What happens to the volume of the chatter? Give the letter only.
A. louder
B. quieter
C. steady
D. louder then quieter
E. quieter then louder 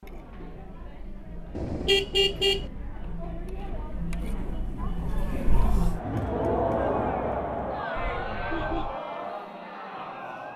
D.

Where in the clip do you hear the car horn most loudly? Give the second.
2 s.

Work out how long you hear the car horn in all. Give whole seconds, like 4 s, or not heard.
2 s.